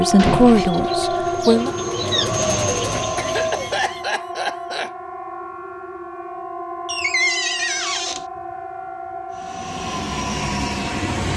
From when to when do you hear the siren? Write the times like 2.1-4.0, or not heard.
0.0-11.3.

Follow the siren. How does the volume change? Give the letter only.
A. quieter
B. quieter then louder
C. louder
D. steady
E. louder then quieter
A.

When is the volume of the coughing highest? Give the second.
4 s.